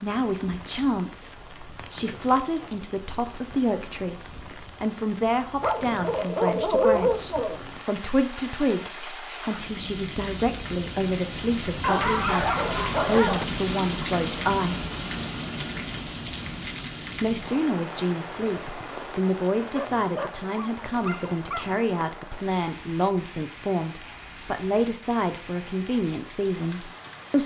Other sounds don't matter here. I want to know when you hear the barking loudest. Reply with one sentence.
The loudest moment of the barking is at 7 seconds.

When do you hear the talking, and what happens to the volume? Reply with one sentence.
The talking can be heard from 0.0 to 14.8 s, at a steady volume; and from 17.2 to 27.4 s, at a steady volume.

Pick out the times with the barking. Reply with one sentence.
You can hear the barking from 5.6 to 7.5 s, from 11.8 to 13.4 s and from 19.8 to 21.8 s.